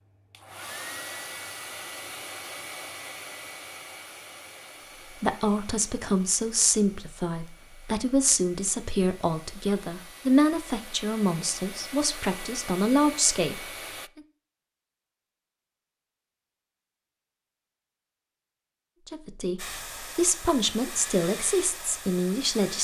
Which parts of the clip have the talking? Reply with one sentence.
You can hear the talking from 5.2 to 14.2 s and from 19.1 to 22.7 s.